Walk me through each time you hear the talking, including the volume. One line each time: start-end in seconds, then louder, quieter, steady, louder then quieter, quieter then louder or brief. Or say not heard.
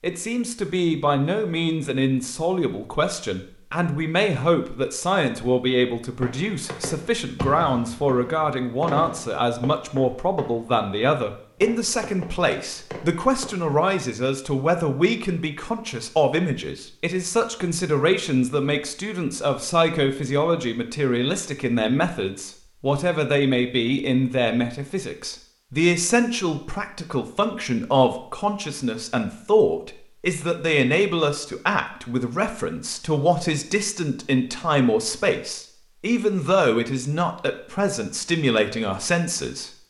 0.0-39.7 steady.